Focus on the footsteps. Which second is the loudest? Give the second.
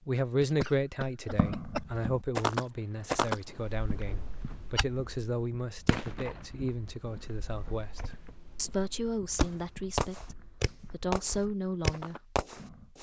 3 s.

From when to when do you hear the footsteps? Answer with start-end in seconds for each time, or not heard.
1.2-12.9.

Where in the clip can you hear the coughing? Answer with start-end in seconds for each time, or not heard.
0.4-2.0.